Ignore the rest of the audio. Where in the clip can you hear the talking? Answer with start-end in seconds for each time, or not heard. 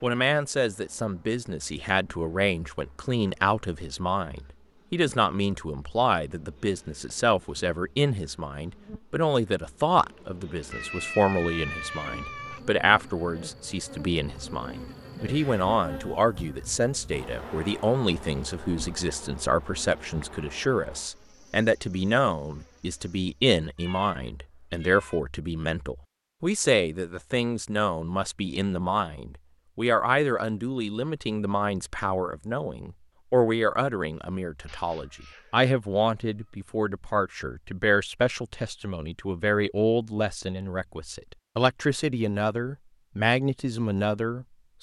0.0-44.7.